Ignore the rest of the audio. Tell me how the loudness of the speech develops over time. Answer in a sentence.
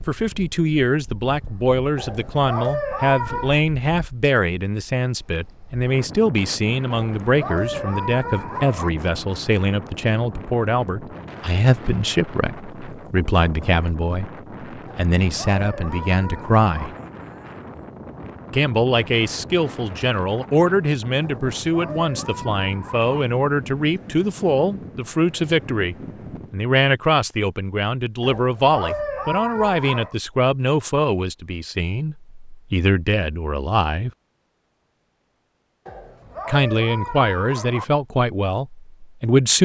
The loudness of the speech stays about the same.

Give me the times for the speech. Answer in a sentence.
You can hear the speech from 0.1 to 16.9 s, from 18.5 to 34.1 s and from 36.5 to 39.6 s.